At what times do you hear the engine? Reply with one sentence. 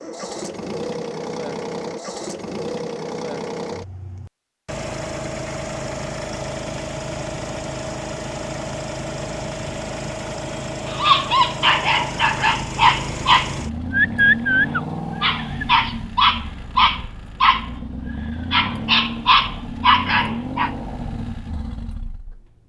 The engine can be heard from 0.0 to 22.6 s.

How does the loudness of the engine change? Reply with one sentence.
The loudness of the engine stays about the same.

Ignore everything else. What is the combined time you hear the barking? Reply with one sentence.
The barking can be heard for 9 seconds in total.